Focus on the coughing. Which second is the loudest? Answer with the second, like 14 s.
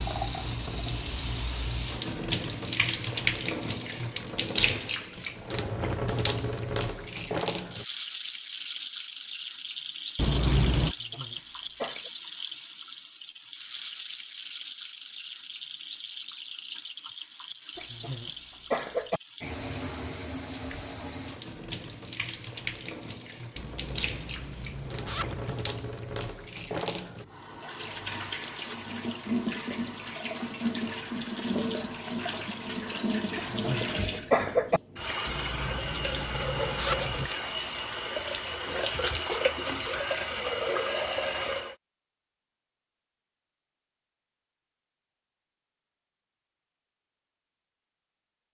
34 s.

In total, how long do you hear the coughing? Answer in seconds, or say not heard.
4 s.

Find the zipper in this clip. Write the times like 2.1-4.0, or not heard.
10.2-10.9, 23.6-25.6, 35.2-37.3.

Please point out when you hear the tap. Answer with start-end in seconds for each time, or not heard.
0.0-41.8.